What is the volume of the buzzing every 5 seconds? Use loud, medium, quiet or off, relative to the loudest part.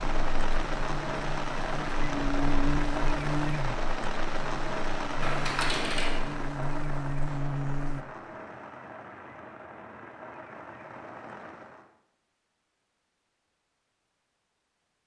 loud, loud, off.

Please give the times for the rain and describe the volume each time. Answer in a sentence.
The rain can be heard from 0.0 to 11.9 s, getting quieter.